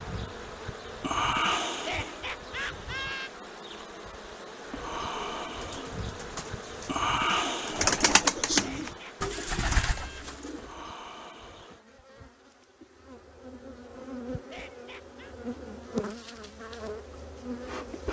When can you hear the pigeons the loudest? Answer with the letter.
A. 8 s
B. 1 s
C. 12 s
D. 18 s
A.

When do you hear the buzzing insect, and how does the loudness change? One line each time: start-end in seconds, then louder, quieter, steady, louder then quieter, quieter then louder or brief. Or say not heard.
0.0-18.0 quieter then louder.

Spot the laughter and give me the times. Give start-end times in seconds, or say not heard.
1.7-3.3, 8.5-10.2, 14.3-15.3.